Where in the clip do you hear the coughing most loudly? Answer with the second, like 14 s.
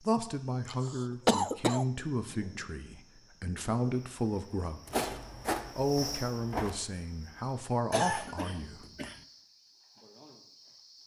1 s.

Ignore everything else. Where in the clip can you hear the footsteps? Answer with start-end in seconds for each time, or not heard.
4.8-6.8.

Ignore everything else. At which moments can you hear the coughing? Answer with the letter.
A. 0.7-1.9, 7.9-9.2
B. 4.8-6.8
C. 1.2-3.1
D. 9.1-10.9
A.